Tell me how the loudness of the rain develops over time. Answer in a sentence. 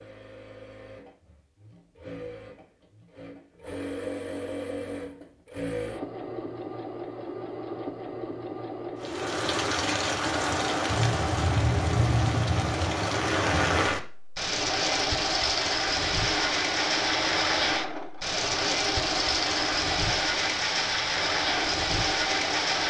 The volume of the rain stays about the same.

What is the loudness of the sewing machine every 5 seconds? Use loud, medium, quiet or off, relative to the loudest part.
medium, loud, loud, loud, loud.